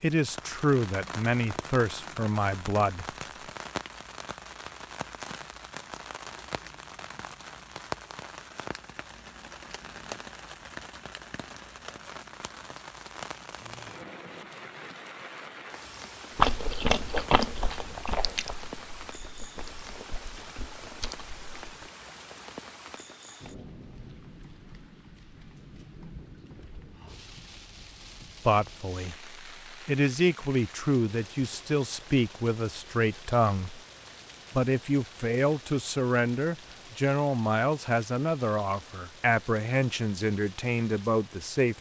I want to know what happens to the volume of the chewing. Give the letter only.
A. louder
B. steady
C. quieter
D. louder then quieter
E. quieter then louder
E.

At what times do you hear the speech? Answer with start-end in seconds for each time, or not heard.
0.0-3.0, 28.4-33.8, 34.5-41.7.